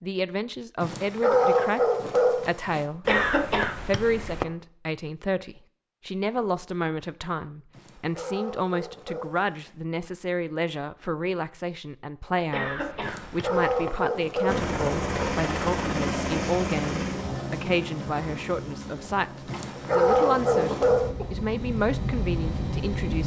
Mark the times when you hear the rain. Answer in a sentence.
You can't hear the rain here.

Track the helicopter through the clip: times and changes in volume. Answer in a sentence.
You can hear the helicopter from 14.4 to 23.2 s, getting quieter then louder.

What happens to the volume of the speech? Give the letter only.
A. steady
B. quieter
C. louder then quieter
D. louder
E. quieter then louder
A.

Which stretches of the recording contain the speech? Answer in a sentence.
The speech can be heard from 0.0 to 3.0 s and from 3.9 to 23.2 s.